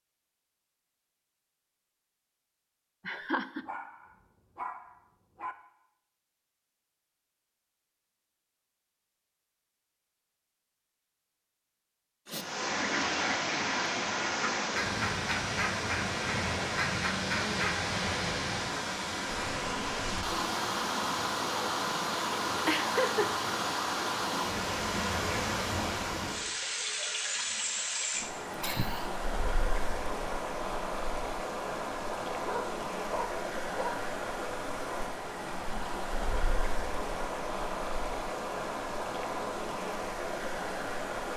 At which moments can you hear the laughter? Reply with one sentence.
The laughter can be heard from 3.0 to 3.6 s, from 22.6 to 23.3 s and from 28.2 to 29.1 s.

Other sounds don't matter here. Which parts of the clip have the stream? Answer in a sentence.
The stream can be heard from 12.3 to 41.3 s.